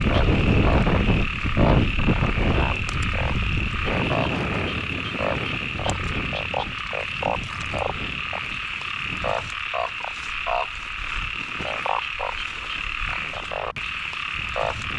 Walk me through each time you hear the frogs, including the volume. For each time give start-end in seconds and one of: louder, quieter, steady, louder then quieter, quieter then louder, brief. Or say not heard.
0.0-14.9 steady.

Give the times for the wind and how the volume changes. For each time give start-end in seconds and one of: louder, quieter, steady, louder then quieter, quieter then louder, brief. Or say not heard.
0.0-14.9 quieter.